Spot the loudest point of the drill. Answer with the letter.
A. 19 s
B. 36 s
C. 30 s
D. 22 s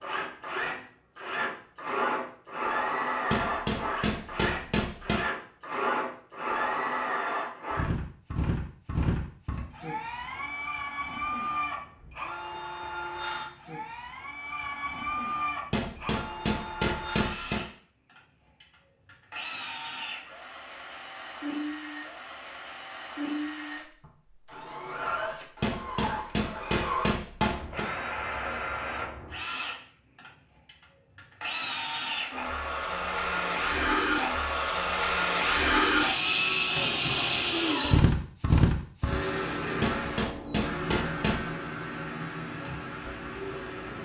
B.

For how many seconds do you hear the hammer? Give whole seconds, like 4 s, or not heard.
8 s.